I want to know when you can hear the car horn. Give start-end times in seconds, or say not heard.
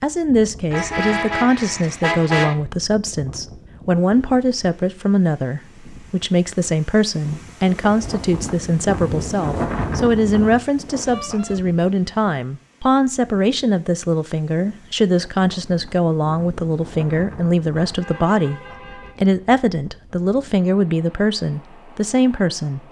0.7-2.5, 11.1-11.6, 17.8-19.1.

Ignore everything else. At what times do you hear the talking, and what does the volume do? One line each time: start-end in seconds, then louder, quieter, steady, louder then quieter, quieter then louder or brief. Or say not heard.
0.0-22.8 steady.